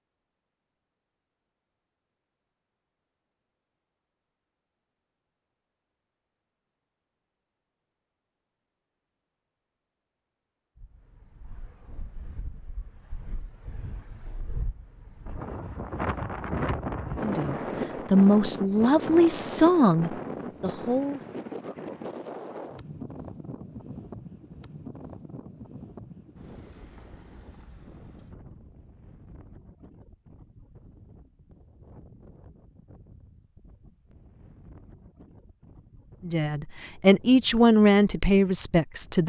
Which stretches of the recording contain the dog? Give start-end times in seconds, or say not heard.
not heard.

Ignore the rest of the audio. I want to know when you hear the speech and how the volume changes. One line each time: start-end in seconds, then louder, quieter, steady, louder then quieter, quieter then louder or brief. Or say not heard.
17.2-21.2 quieter
36.2-39.2 brief.